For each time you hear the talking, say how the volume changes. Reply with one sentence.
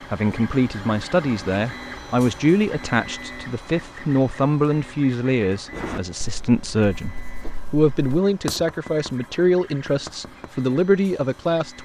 The talking can be heard from 0.1 to 11.7 s, at a steady volume.